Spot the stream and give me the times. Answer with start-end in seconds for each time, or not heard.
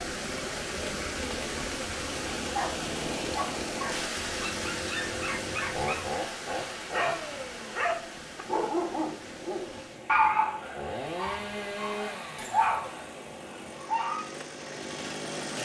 0.0-15.6.